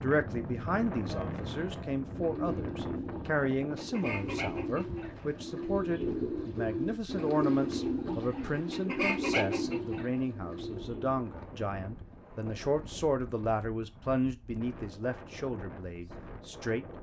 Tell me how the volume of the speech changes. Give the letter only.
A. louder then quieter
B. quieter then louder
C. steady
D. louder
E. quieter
C.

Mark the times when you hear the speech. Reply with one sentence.
The speech can be heard from 0.0 to 16.9 s.